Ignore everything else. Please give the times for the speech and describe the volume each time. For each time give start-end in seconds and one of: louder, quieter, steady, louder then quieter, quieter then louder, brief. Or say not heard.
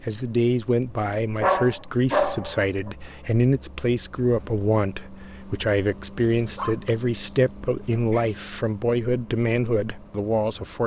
0.0-10.8 steady.